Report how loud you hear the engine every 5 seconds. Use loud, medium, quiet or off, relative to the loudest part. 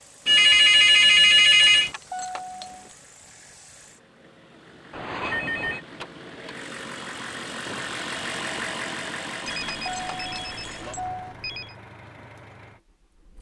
quiet, loud, medium.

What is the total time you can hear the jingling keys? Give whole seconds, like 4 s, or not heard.
3 s.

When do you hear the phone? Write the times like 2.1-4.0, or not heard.
0.2-1.9, 4.9-5.8, 9.4-11.8.